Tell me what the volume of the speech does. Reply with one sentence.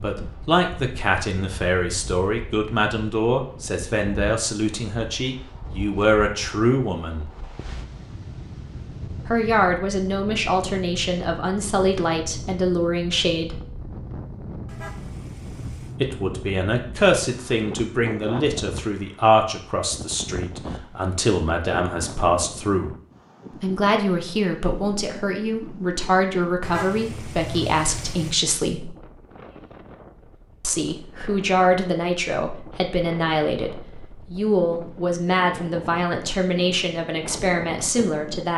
The volume of the speech stays about the same.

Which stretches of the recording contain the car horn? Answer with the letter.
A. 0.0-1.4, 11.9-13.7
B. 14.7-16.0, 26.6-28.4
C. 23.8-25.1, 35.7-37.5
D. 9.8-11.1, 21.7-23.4
B.